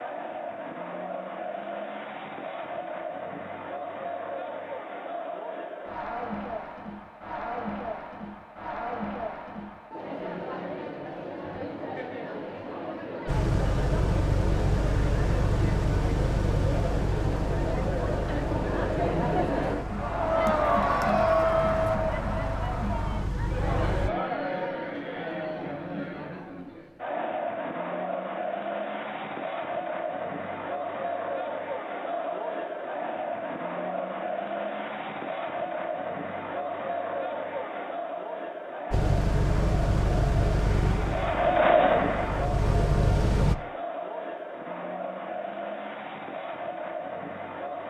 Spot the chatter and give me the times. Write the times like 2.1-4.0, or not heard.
0.0-47.8.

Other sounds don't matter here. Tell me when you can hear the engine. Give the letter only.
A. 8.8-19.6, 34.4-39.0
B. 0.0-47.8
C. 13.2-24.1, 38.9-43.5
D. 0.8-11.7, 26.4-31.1
C.